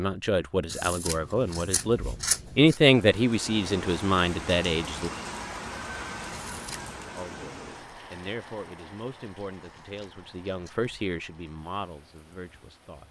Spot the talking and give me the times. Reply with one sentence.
You can hear the talking from 0.0 to 5.1 s and from 7.2 to 13.0 s.